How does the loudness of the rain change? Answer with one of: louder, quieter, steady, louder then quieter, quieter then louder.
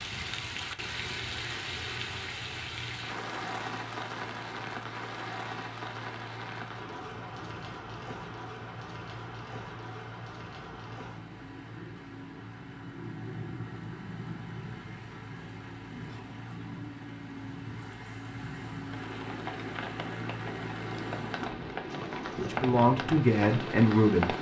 quieter then louder.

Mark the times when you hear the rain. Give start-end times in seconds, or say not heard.
0.0-24.3.